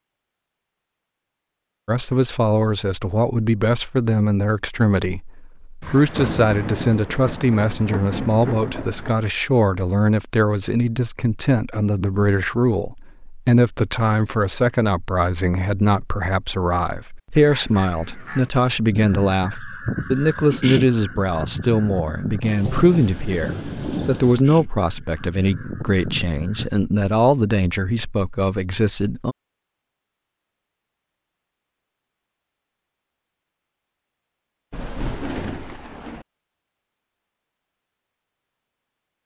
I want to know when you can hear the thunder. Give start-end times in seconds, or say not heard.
5.8-9.1, 22.4-24.4, 34.7-36.2.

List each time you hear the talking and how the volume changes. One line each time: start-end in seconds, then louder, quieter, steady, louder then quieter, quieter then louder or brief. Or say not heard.
1.9-29.4 steady.